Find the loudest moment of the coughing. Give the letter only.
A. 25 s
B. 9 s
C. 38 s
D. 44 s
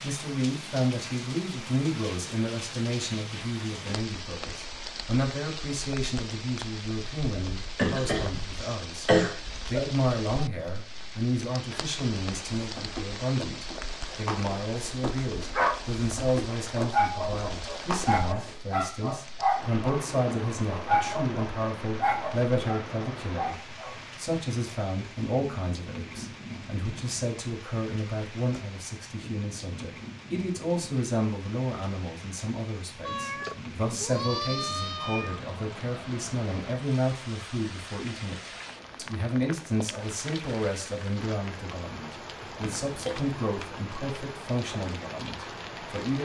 B.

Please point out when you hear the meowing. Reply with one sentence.
The meowing can be heard from 33.0 to 35.4 s.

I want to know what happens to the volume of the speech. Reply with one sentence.
The volume of the speech stays about the same.